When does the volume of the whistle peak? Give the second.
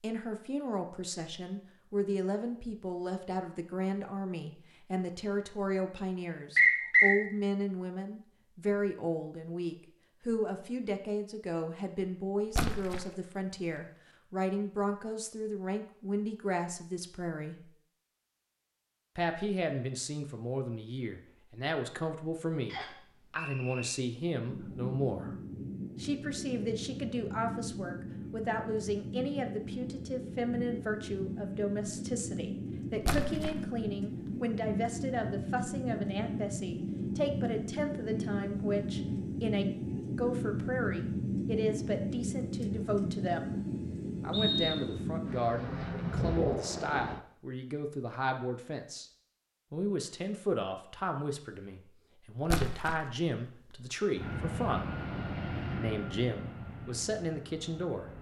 7 s.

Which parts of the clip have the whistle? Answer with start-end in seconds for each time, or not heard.
6.5-7.2, 22.6-23.9, 44.3-45.0.